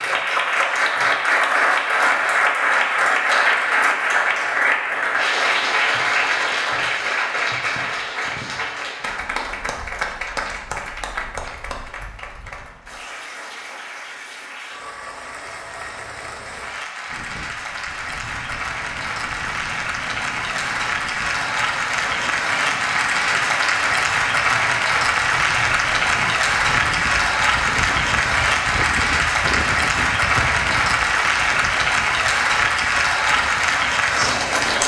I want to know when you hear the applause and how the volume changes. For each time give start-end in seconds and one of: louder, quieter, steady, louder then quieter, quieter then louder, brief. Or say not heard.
0.0-34.8 quieter then louder.